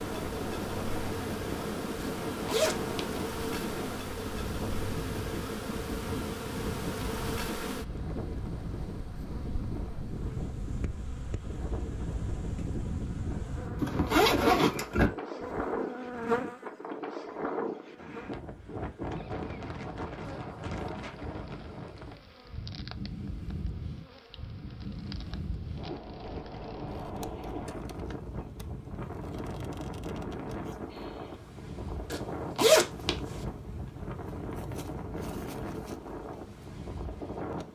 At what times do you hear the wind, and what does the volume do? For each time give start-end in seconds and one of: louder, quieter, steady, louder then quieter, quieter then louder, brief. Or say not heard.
0.0-37.6 steady.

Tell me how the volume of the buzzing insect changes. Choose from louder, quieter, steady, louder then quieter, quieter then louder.
quieter.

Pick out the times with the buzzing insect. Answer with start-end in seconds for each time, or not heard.
0.0-37.6.